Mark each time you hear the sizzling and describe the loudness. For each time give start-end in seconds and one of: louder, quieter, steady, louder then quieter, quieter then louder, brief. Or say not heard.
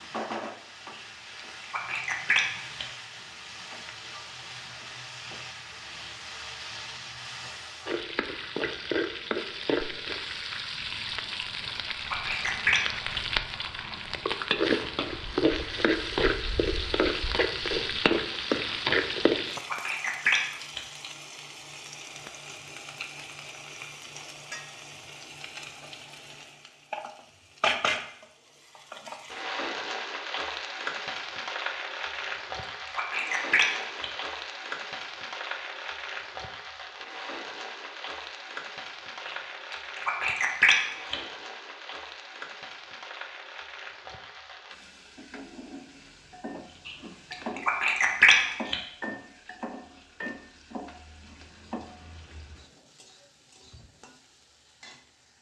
0.0-55.3 louder then quieter.